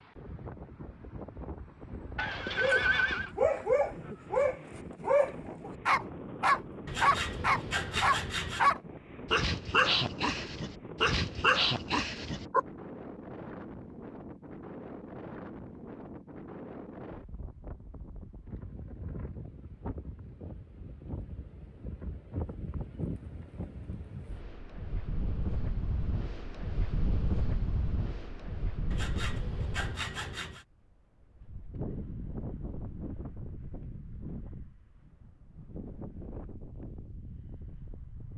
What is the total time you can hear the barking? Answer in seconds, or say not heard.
10 s.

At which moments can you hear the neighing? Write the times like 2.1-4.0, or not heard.
2.1-3.3.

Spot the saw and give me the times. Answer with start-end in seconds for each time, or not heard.
6.8-8.7, 28.9-30.6.